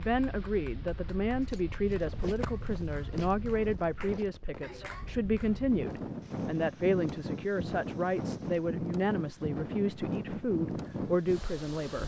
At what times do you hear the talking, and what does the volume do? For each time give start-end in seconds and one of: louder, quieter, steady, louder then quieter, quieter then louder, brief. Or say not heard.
0.0-12.0 steady.